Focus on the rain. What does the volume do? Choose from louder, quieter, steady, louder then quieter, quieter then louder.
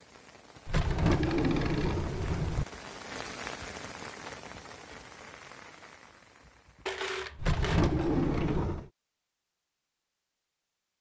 louder then quieter.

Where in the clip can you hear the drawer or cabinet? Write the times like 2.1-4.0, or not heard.
0.7-2.6, 7.3-8.9.